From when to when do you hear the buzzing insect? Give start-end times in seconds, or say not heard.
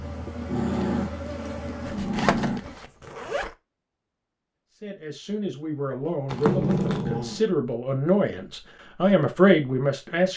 0.0-2.8.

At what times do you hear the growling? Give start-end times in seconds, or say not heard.
0.2-2.6, 6.5-7.4.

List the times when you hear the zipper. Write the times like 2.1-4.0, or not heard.
1.9-3.5, 6.2-7.0.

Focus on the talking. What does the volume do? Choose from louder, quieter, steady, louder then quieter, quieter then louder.
louder.